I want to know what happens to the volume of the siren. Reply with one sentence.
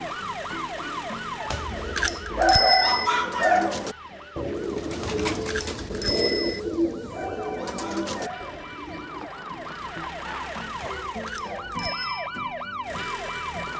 The loudness of the siren goes down, then up.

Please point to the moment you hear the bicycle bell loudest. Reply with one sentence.
The volume of the bicycle bell peaks at 3 seconds.